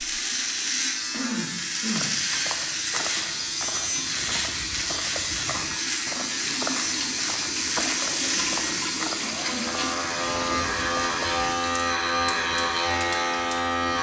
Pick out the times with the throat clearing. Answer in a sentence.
You can hear the throat clearing from 1.1 to 2.2 s and from 8.1 to 9.7 s.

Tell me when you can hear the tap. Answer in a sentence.
The tap can be heard from 0.0 to 13.8 s.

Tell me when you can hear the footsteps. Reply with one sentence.
The footsteps can be heard from 1.9 to 11.6 s.